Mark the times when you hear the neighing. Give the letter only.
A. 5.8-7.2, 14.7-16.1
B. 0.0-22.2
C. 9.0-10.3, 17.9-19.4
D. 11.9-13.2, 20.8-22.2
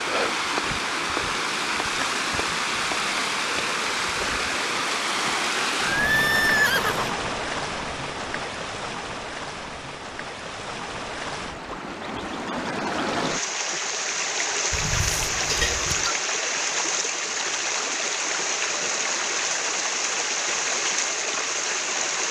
A.